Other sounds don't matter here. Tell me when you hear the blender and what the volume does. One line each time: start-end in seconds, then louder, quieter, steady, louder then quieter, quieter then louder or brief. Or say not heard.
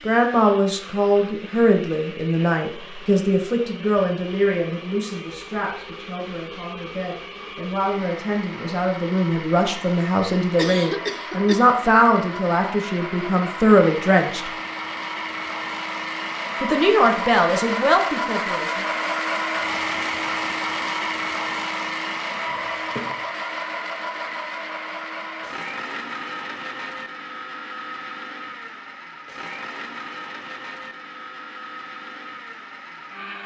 0.0-33.4 louder then quieter.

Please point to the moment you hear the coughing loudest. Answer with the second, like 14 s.
11 s.